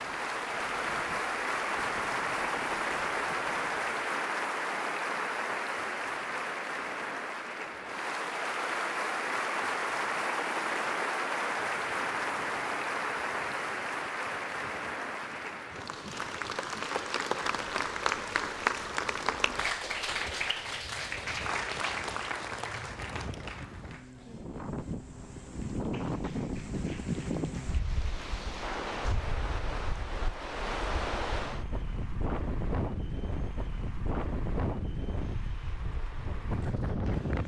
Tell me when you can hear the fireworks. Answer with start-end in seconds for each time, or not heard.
not heard.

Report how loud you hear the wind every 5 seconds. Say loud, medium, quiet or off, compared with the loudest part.
quiet, quiet, quiet, quiet, medium, loud, loud, loud.